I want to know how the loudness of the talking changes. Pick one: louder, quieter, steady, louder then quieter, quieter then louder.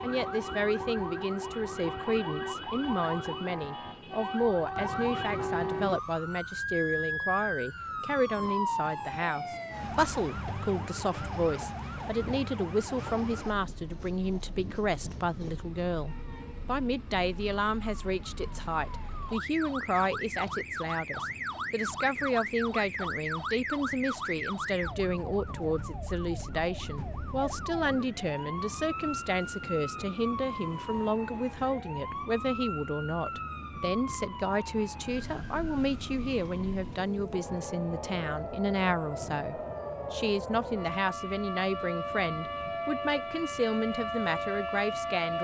steady.